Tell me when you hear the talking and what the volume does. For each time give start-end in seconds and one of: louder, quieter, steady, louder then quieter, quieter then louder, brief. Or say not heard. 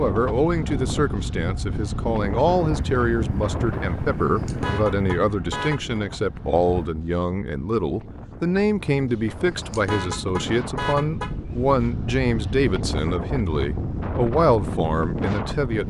0.0-15.8 steady.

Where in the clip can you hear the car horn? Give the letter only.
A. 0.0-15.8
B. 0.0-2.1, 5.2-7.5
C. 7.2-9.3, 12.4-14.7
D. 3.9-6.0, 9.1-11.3
D.